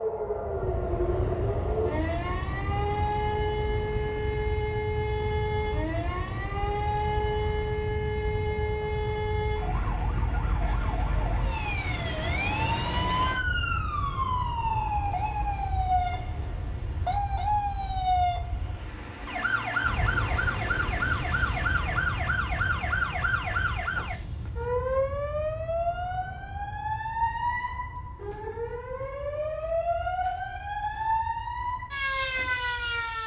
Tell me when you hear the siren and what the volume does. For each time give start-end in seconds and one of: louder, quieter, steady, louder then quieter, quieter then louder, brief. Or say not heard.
0.0-33.2 steady.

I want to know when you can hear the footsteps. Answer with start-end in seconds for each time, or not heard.
not heard.